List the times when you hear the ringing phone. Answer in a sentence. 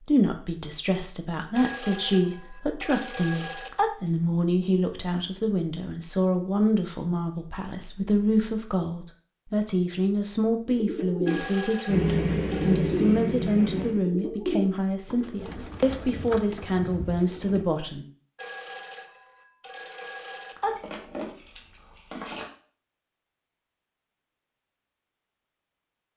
The ringing phone can be heard from 1.6 to 3.9 s, from 11.2 to 12.8 s and from 18.4 to 20.8 s.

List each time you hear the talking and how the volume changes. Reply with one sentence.
You can hear the talking from 0.1 to 18.1 s, at a steady volume.